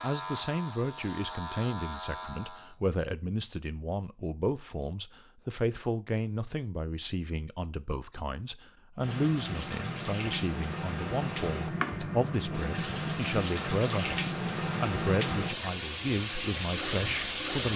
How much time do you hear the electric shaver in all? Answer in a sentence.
You can hear the electric shaver for 3 seconds altogether.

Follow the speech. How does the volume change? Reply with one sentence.
The loudness of the speech stays about the same.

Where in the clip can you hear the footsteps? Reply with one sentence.
The footsteps can't be heard in this clip.